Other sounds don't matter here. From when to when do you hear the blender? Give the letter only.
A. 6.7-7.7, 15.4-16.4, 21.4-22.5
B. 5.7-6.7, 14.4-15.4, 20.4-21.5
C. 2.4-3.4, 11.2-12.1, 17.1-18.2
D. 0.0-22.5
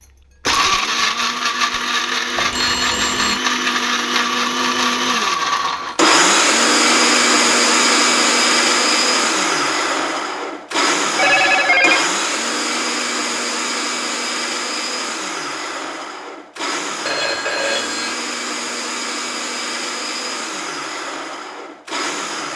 D.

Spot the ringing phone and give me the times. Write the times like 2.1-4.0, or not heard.
2.4-3.4, 11.2-12.1, 17.1-18.2.